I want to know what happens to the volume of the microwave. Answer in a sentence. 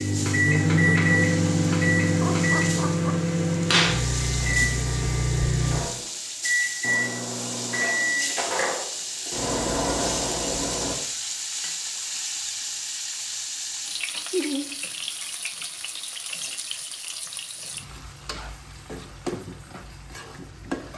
The volume of the microwave goes down.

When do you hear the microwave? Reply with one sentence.
You can hear the microwave from 0.0 to 10.9 s.